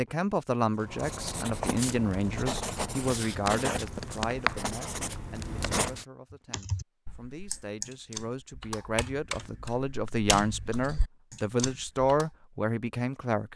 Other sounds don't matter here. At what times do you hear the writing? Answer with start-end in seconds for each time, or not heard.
0.8-6.0.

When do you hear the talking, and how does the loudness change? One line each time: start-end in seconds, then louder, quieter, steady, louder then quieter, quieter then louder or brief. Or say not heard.
0.0-13.5 quieter then louder.